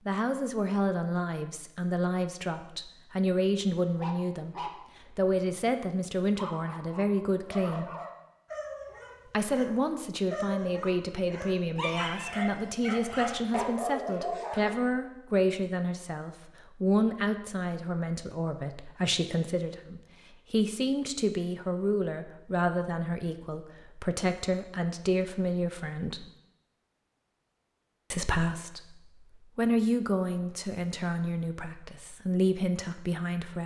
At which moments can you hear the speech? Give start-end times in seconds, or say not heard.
0.1-7.9, 9.2-26.3, 28.1-33.6.